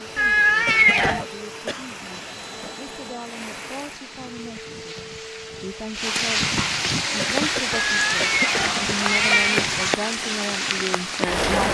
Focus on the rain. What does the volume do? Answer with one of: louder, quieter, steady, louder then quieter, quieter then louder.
louder.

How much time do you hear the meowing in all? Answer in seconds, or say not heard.
3 s.